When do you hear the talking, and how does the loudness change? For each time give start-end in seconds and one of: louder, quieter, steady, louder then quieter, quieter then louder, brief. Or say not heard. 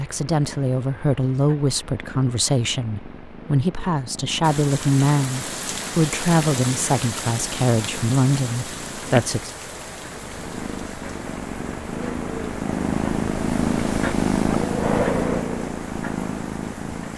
0.0-9.5 steady.